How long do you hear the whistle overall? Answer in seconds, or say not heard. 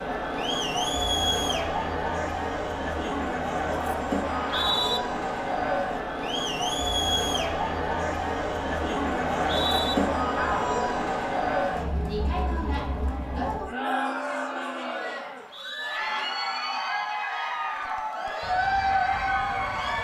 2 s.